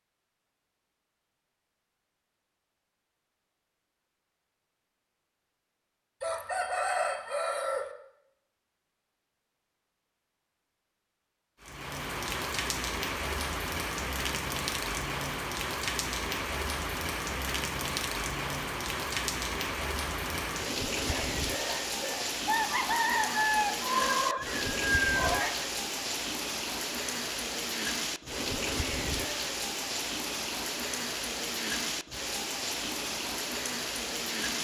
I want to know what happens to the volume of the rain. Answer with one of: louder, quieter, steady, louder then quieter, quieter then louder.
steady.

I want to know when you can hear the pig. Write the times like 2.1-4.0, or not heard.
not heard.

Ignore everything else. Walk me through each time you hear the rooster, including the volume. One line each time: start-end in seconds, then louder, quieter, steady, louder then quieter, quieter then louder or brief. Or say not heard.
6.2-7.9 brief
21.1-25.6 louder.